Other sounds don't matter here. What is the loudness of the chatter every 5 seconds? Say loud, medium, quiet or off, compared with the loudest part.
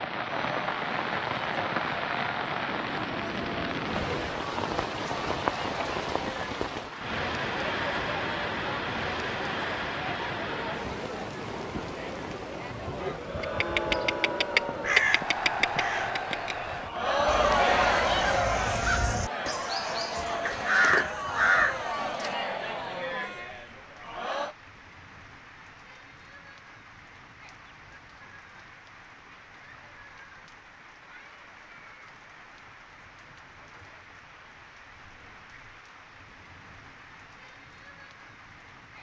medium, medium, medium, loud, medium, off, off, off.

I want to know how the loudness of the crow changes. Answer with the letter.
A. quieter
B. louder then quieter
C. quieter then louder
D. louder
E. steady
C.